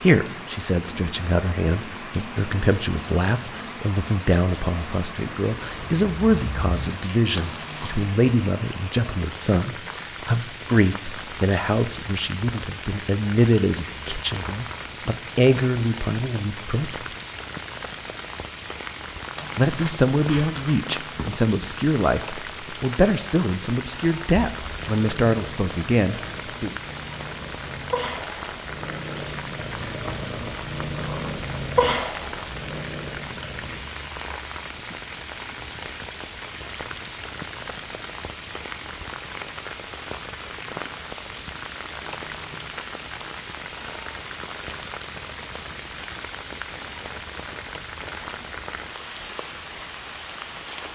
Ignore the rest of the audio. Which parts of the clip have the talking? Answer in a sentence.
You can hear the talking from 0.0 to 17.1 s and from 19.6 to 26.8 s.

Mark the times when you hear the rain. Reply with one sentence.
You can hear the rain from 0.0 to 50.9 s.